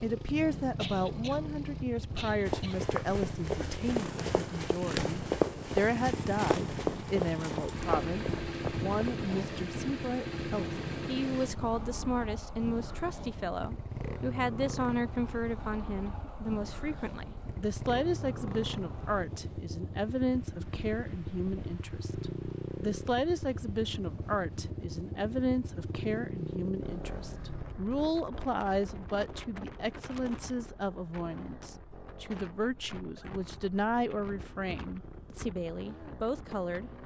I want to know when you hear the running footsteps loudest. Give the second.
5 s.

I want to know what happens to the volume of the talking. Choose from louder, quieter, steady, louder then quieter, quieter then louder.
steady.